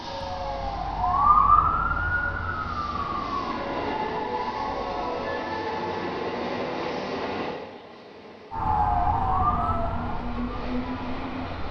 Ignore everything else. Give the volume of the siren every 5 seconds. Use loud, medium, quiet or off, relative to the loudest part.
loud, loud, quiet.